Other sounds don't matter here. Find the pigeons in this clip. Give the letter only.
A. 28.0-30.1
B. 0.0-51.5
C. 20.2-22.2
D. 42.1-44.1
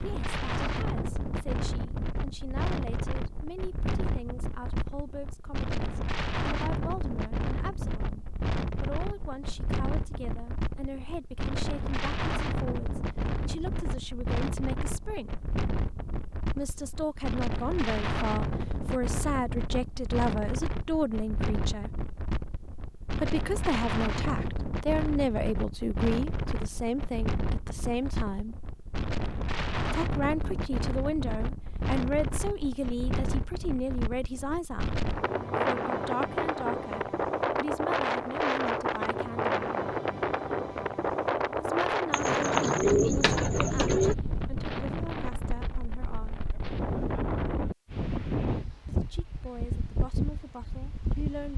D.